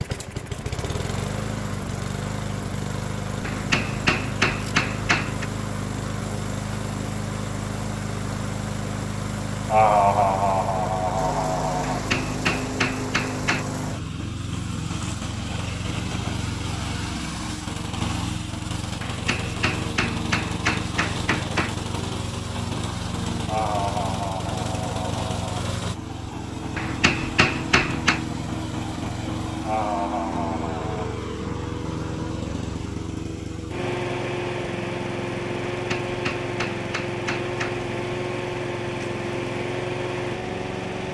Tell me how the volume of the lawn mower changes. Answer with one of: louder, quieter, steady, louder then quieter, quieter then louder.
steady.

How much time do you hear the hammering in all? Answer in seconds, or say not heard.
10 s.